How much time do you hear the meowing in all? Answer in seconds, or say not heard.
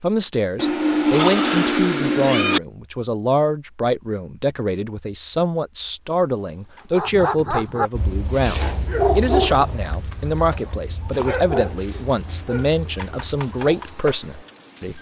2 s.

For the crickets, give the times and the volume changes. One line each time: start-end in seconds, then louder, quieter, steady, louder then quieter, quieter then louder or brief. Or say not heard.
6.0-14.9 louder.